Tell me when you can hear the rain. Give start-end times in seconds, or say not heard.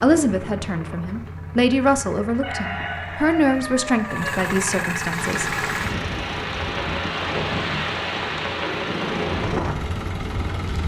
5.1-10.8.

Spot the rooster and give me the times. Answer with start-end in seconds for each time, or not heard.
2.4-4.3.